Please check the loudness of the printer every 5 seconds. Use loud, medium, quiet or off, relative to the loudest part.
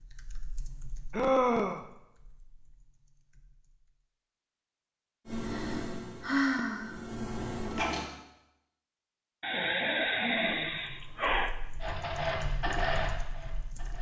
off, loud, loud.